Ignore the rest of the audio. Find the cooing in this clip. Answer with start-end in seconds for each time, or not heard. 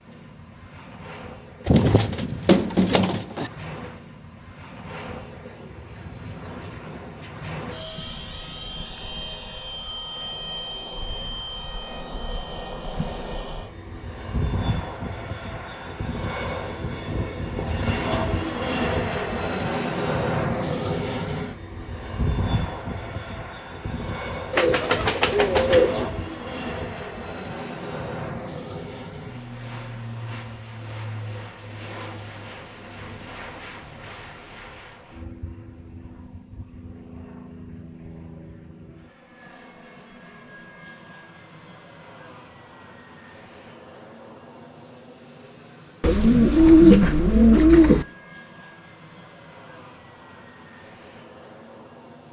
1.6-3.5, 24.5-26.1, 46.0-48.0.